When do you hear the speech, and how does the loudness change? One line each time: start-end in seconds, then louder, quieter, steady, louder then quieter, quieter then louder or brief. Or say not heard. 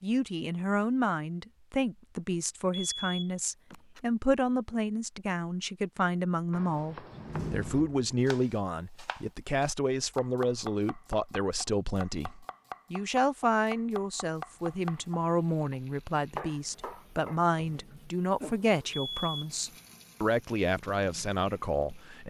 0.0-22.2 steady.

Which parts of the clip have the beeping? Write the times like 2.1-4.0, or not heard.
2.9-4.1, 18.9-19.5.